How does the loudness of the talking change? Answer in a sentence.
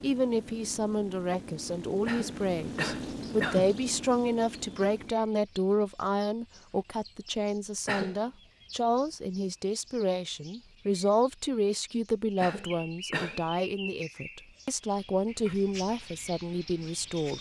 The loudness of the talking stays about the same.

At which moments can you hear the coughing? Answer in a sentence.
You can hear the coughing from 2.0 to 3.8 s, from 7.8 to 8.2 s and from 12.4 to 13.4 s.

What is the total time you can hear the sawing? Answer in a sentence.
You can't hear the sawing here.